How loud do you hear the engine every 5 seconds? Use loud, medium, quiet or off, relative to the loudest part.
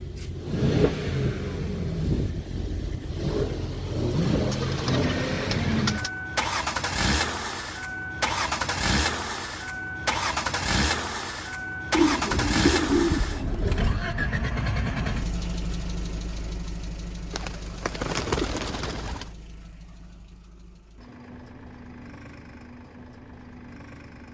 loud, loud, loud, medium, quiet.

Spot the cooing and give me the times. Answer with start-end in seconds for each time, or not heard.
4.5-6.1, 11.9-13.9, 17.3-19.3.